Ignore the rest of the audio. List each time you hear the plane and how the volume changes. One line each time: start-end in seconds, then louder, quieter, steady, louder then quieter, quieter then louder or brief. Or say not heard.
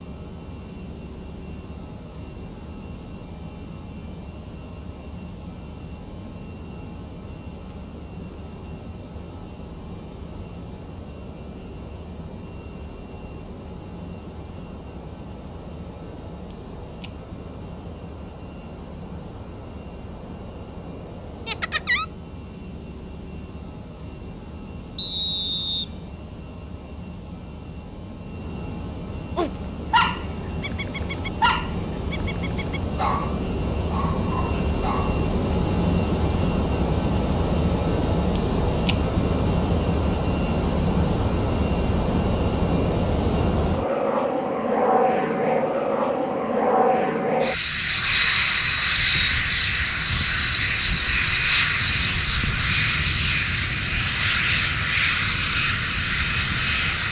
0.0-57.0 louder.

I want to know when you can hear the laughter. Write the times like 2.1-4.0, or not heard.
21.4-22.1.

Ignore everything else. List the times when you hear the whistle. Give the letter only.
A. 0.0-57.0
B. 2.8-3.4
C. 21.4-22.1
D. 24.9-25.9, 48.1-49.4
D.